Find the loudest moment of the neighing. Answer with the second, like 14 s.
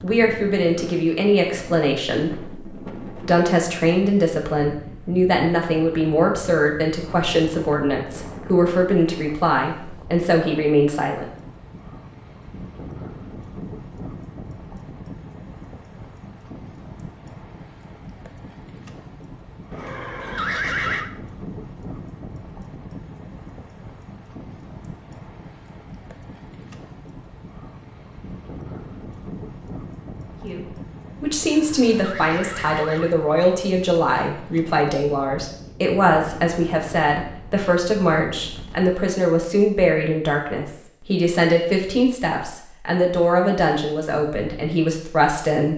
21 s.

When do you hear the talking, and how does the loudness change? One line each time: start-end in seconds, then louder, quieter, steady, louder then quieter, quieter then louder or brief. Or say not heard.
0.0-11.2 steady
30.4-45.7 steady.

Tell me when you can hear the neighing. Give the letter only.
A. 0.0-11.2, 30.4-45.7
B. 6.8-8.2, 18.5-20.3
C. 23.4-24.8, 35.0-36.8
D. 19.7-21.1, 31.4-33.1
D.